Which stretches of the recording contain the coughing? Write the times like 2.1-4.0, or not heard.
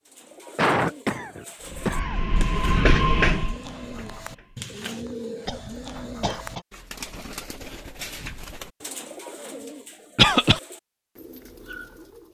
0.6-2.5, 5.5-6.6, 10.2-10.6.